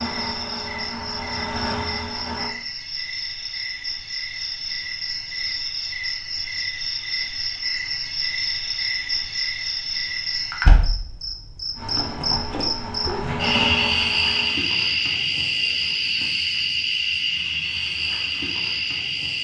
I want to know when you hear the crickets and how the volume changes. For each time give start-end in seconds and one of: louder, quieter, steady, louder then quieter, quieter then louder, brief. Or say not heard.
0.0-19.4 louder.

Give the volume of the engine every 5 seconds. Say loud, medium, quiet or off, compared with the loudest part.
loud, off, loud, off.